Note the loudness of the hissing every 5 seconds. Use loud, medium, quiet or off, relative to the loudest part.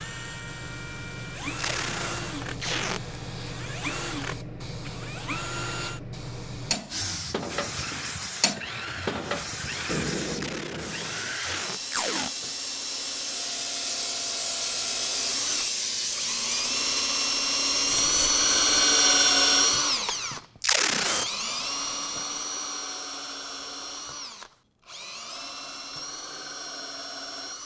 medium, medium, loud, loud, off, off.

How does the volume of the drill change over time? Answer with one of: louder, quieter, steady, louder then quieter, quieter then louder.
louder then quieter.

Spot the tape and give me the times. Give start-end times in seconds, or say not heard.
1.6-3.2, 10.3-12.3, 20.6-21.2.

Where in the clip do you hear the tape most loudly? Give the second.
21 s.